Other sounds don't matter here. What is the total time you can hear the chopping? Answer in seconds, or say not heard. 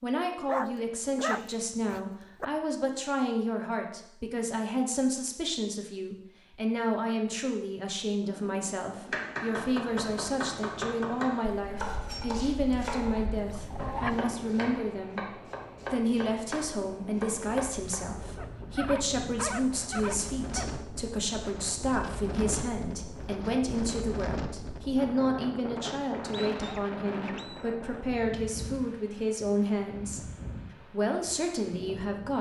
9 s.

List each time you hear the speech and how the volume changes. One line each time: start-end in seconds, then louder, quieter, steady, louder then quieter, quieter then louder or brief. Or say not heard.
0.0-30.2 steady
30.9-32.3 brief.